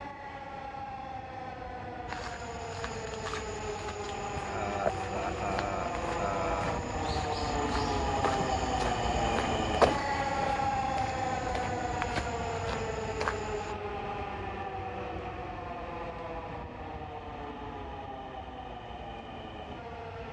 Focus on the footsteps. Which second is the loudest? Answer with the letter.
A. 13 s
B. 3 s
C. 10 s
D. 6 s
C.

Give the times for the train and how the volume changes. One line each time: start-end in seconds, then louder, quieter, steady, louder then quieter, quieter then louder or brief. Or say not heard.
0.0-20.2 louder then quieter.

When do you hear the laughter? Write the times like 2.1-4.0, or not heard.
4.5-6.8.